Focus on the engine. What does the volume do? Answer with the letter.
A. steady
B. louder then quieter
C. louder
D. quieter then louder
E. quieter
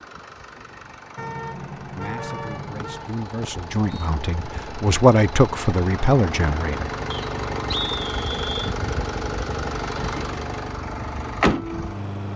C.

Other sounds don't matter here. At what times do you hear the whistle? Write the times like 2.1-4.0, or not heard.
2.8-4.1, 7.1-8.7.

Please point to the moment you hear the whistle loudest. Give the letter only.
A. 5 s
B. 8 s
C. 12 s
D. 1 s
B.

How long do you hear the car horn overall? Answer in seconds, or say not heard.
2 s.